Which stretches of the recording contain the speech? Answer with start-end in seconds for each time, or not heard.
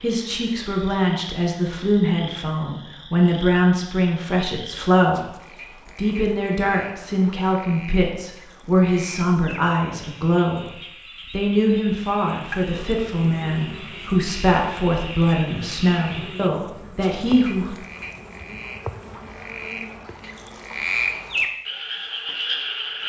0.0-5.3, 6.0-10.7, 11.3-17.8.